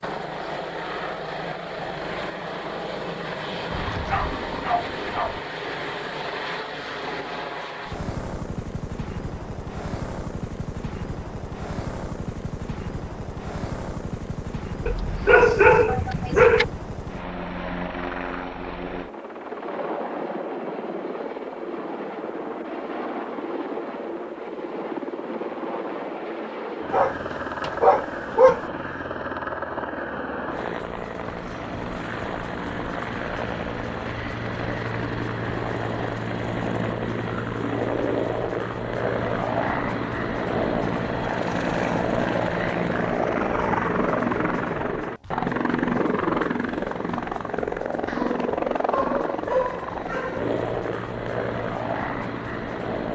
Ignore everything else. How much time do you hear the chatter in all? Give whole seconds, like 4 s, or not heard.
not heard.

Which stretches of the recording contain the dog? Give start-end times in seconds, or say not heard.
3.7-5.4, 14.8-16.6, 26.9-28.6, 48.0-50.5.